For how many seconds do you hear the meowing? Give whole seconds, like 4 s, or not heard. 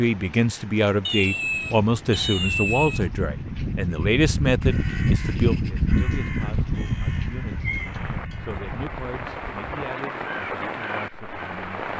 3 s.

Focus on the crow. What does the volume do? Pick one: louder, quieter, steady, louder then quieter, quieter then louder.
louder then quieter.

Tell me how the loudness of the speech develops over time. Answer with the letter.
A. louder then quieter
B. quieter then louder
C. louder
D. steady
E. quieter
E.